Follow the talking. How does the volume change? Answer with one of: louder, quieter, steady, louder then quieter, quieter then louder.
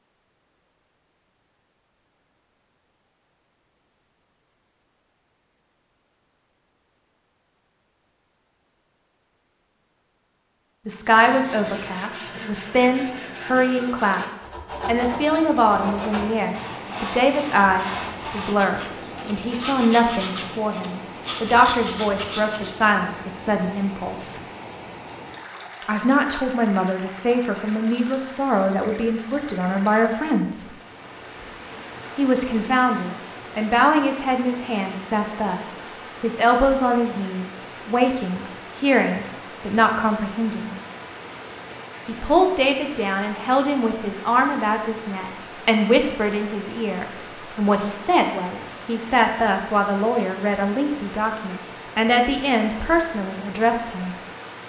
steady.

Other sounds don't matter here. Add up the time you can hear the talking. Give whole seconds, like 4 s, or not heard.
39 s.